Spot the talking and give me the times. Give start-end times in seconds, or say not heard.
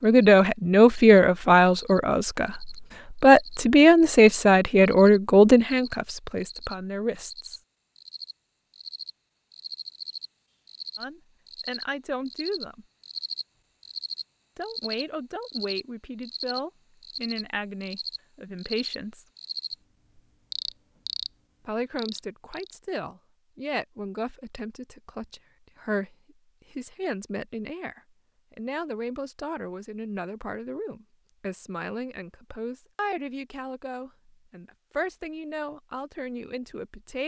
0.0-7.6, 10.9-12.8, 14.6-19.2, 21.6-37.2.